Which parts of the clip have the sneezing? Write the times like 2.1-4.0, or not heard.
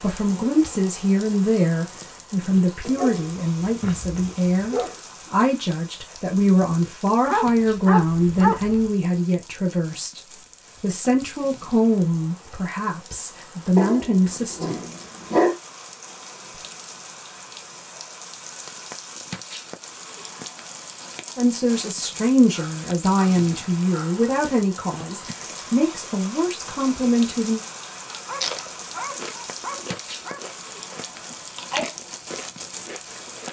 31.3-31.9.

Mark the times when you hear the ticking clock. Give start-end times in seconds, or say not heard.
not heard.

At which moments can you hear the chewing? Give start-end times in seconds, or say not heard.
28.3-33.4.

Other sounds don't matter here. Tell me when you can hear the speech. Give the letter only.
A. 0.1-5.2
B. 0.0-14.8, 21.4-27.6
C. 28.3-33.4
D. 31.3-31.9
B.